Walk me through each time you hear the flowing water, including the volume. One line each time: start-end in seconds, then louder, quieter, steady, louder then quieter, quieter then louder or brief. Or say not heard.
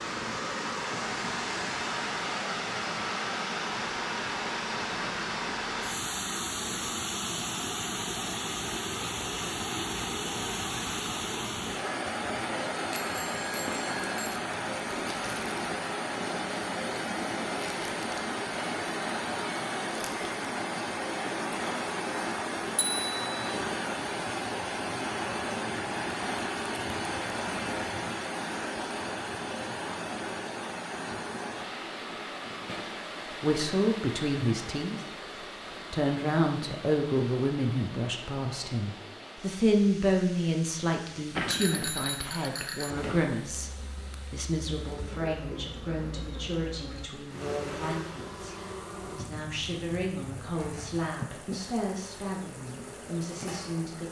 0.0-54.0 quieter.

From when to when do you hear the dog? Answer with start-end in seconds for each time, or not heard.
not heard.